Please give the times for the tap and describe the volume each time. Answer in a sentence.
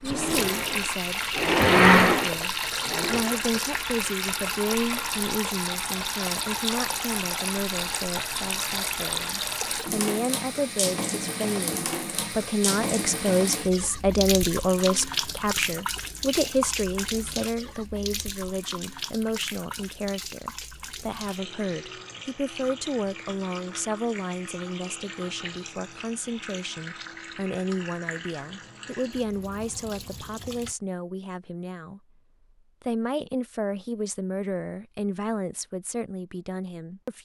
You can hear the tap from 0.0 to 30.8 s, getting quieter.